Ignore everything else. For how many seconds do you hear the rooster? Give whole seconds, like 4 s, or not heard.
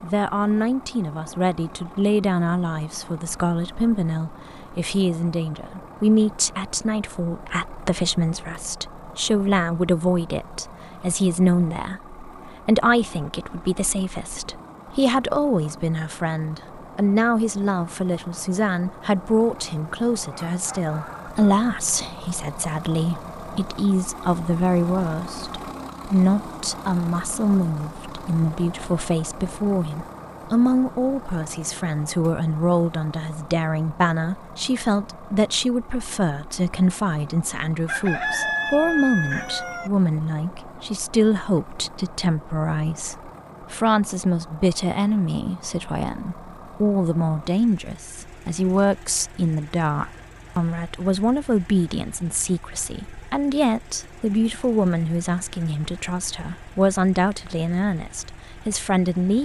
3 s.